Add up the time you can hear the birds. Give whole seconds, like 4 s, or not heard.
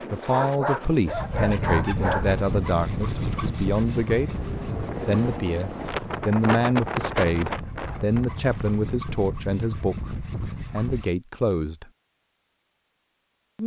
not heard.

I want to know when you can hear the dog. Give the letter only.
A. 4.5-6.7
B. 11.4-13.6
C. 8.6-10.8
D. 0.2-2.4
D.